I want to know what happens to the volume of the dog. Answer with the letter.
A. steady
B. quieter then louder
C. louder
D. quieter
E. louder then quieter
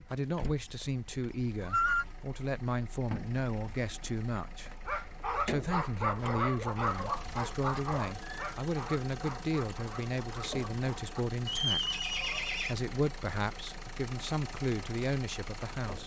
D.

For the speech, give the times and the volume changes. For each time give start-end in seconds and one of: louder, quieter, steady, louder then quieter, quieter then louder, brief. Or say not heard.
0.1-16.0 steady.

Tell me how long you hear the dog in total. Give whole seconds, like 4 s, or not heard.
6 s.